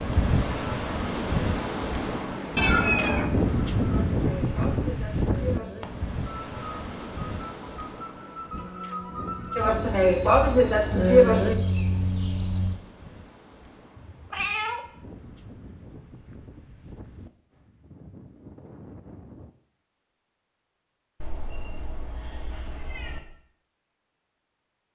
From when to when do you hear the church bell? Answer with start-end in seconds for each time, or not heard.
not heard.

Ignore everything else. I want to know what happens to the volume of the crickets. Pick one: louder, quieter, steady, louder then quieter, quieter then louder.
louder.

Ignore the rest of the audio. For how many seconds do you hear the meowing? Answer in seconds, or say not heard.
4 s.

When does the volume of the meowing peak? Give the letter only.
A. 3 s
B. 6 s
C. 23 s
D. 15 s
A.